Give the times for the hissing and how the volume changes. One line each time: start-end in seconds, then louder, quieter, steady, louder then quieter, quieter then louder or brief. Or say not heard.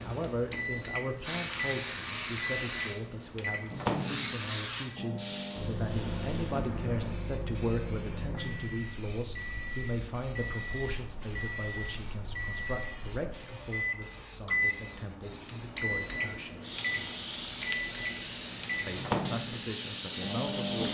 0.0-20.8 quieter then louder.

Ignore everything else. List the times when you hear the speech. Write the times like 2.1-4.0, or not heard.
0.0-16.6, 18.9-20.8.